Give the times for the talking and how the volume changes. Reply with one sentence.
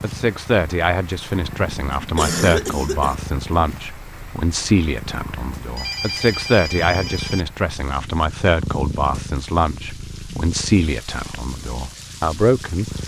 You can hear the talking from 0.0 to 12.9 s, at a steady volume.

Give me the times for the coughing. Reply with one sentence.
The coughing can be heard from 1.8 to 3.1 s.